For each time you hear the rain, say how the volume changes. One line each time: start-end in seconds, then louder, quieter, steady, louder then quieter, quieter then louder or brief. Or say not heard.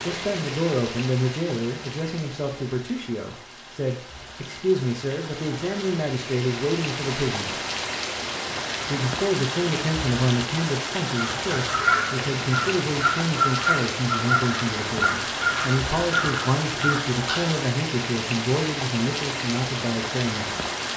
0.0-20.9 louder.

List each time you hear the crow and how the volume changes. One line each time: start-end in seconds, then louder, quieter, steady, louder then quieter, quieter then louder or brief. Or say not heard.
11.2-17.5 steady.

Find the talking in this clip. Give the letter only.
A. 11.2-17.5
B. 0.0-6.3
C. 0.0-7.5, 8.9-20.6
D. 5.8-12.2
C.